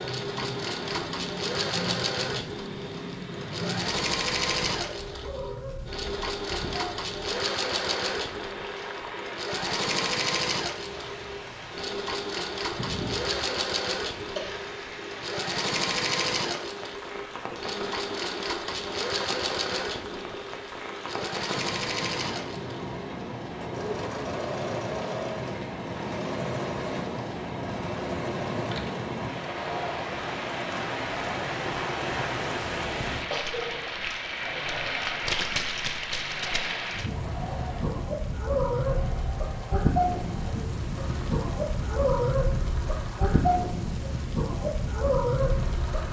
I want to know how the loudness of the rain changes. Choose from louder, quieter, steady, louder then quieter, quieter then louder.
louder.